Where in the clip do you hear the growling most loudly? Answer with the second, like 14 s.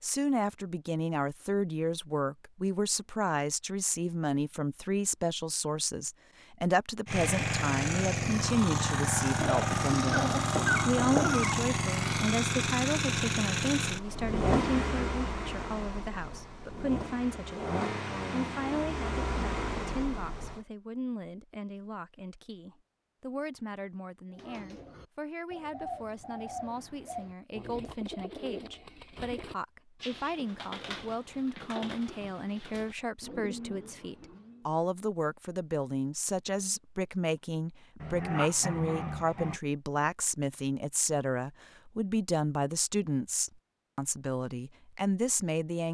11 s.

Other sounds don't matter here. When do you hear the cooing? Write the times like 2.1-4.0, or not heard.
24.3-34.7.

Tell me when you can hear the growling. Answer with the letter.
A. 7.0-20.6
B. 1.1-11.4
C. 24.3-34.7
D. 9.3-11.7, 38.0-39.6
D.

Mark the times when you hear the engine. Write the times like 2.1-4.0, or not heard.
7.0-20.6.